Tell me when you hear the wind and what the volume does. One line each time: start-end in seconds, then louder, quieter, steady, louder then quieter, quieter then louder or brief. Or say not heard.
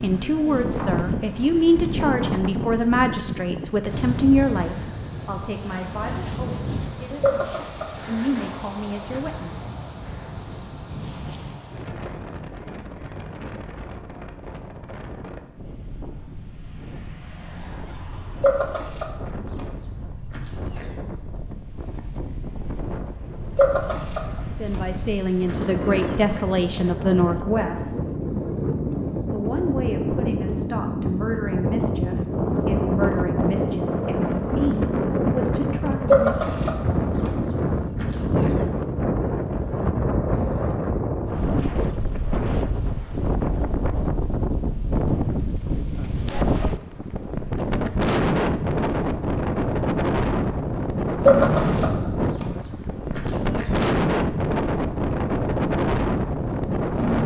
0.0-57.2 quieter then louder.